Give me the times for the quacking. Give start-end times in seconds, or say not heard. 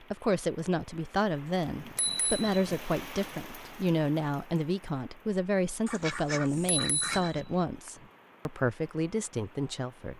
5.8-7.4.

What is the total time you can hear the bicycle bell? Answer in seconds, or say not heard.
3 s.